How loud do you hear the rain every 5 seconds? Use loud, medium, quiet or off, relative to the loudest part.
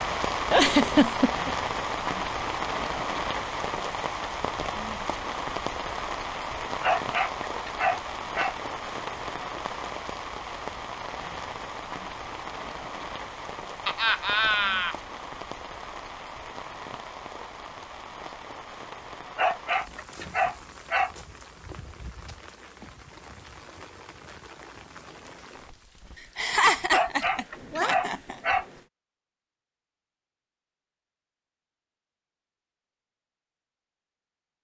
loud, loud, medium, medium, quiet, quiet, off.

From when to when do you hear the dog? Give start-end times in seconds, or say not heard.
6.8-8.6, 19.4-21.1, 26.9-28.6.